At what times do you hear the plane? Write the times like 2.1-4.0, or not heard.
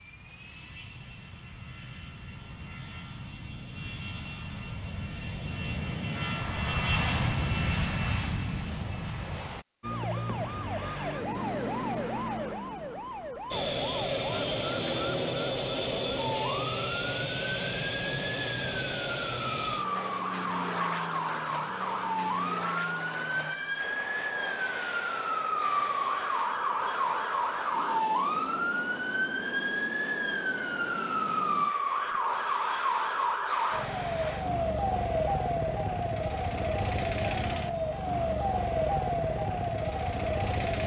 0.0-9.7, 13.5-34.5.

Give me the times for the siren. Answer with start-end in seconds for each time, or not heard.
9.8-40.8.